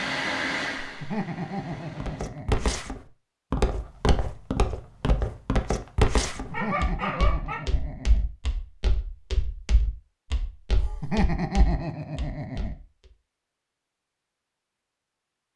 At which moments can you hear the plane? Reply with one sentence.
You can hear the plane from 0.0 to 2.2 s.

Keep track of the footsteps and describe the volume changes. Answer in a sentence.
The loudness of the footsteps goes down.